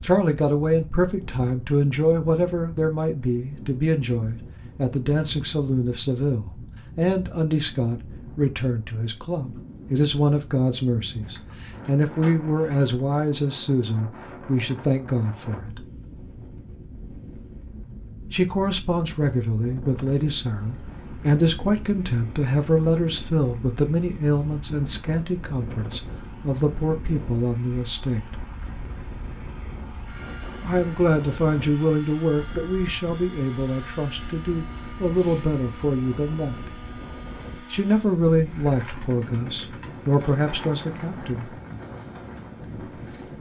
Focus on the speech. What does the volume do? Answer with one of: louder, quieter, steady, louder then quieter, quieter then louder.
steady.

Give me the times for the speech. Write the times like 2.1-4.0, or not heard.
0.0-15.8, 18.3-28.4, 30.6-36.6, 37.7-41.5.